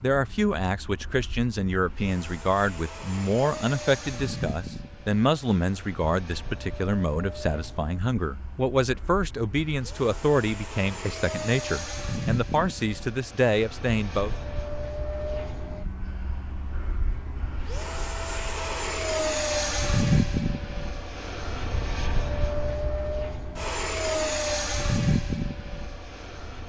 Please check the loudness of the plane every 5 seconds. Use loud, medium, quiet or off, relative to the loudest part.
medium, quiet, medium, loud, loud, loud.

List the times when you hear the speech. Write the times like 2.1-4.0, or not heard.
0.0-14.3.